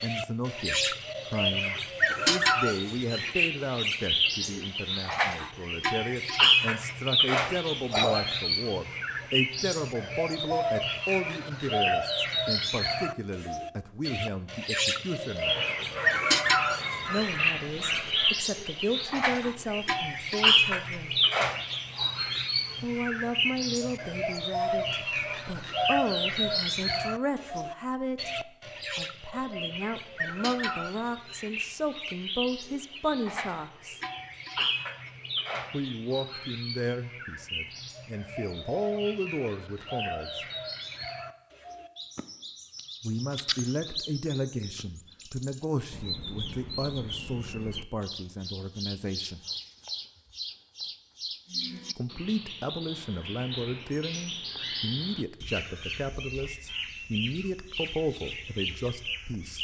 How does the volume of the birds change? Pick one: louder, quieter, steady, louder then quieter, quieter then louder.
quieter.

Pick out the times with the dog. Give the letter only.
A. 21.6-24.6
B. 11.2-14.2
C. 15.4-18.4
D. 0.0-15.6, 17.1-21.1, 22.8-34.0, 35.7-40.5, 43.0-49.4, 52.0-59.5
C.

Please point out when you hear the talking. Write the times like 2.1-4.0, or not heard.
0.0-15.6, 17.1-21.1, 22.8-34.0, 35.7-40.5, 43.0-49.4, 52.0-59.5.